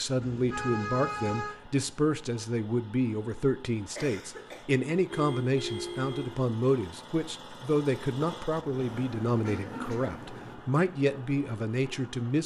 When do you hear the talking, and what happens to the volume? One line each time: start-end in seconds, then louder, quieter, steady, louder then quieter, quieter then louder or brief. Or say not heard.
0.0-12.4 steady.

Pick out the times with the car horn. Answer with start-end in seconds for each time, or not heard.
0.2-1.6, 5.1-6.4, 8.6-10.6.